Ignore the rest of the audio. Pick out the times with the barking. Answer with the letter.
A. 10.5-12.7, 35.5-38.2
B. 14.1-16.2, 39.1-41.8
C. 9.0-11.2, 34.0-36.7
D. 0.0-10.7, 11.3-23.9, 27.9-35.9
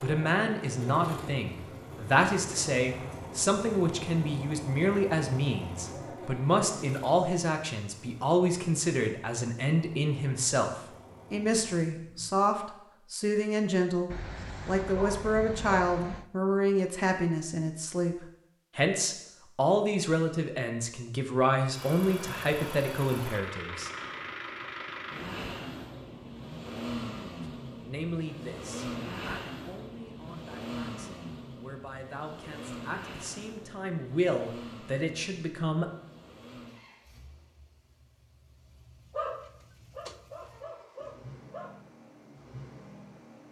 B.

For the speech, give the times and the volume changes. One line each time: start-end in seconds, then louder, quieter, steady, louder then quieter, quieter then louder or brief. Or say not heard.
0.0-10.7 steady
11.3-23.9 steady
27.9-35.9 quieter then louder.